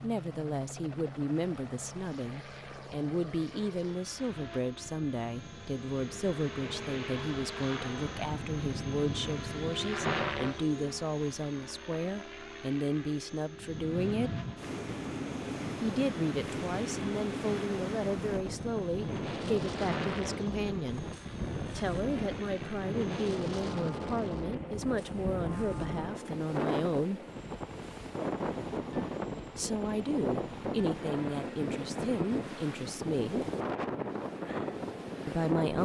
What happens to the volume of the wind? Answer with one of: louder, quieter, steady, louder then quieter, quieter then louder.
steady.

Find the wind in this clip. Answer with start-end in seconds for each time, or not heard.
13.6-35.8.